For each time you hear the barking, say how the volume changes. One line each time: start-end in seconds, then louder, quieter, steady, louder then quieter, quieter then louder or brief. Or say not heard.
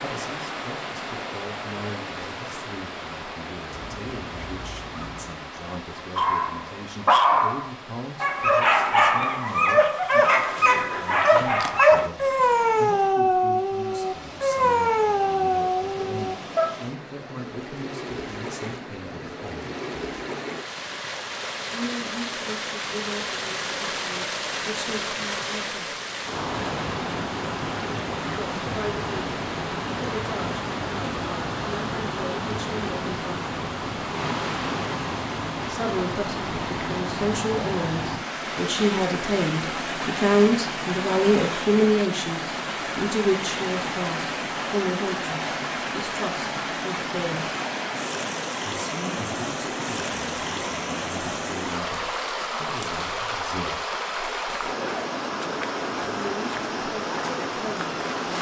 6.0-16.8 steady.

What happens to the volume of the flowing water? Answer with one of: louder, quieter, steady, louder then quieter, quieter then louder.
louder.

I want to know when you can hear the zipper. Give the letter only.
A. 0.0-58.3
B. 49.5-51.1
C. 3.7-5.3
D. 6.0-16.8
C.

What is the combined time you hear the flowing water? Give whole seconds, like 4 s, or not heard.
58 s.